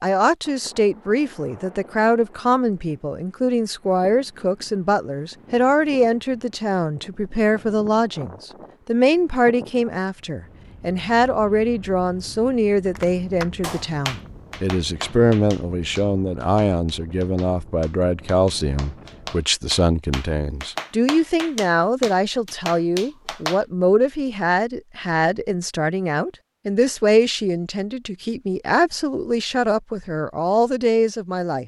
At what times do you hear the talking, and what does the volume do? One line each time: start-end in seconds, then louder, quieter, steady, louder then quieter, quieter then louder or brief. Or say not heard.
0.0-31.6 steady.